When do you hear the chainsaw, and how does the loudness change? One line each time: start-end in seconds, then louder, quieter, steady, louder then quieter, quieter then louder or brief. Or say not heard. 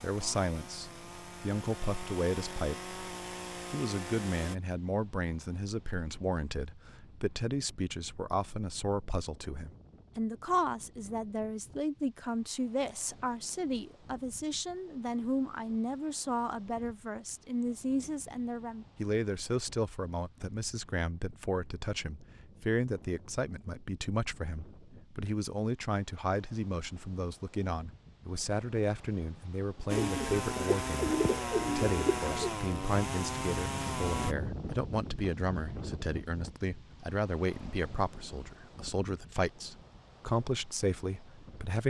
0.0-4.5 louder
29.9-34.4 steady.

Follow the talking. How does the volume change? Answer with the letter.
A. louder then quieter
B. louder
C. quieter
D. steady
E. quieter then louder
D.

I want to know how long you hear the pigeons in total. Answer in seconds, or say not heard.
3 s.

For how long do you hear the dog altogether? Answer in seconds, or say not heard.
not heard.